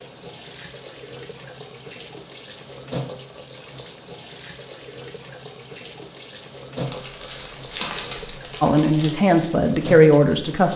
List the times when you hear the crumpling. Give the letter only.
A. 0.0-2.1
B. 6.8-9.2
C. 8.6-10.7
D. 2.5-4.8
B.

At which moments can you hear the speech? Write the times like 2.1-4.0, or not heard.
8.6-10.7.